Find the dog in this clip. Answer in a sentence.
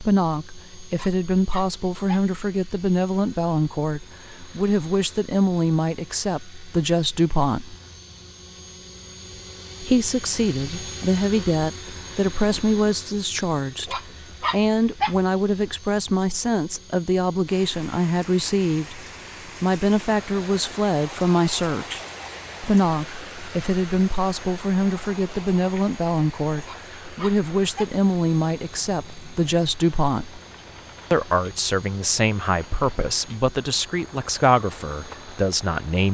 You can hear the dog from 0.9 to 2.4 s, from 13.8 to 15.2 s and from 26.6 to 28.0 s.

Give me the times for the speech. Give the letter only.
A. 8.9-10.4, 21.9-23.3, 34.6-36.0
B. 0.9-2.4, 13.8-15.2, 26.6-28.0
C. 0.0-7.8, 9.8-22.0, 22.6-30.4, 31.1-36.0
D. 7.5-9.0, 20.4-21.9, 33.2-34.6
C.